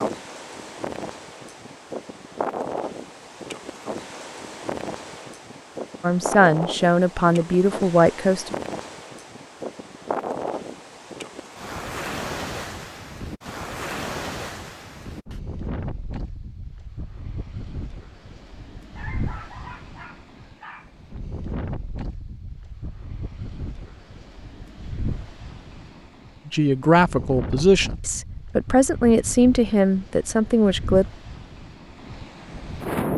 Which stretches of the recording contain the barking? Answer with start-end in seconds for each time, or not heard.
18.9-20.9.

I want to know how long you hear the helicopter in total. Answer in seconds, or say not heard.
not heard.